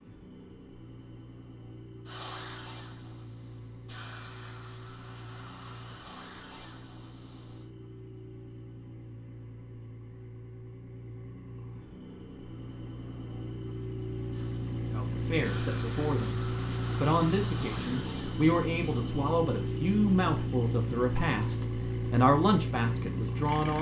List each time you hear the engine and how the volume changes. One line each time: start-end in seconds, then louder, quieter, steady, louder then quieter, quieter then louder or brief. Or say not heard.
0.0-23.7 louder.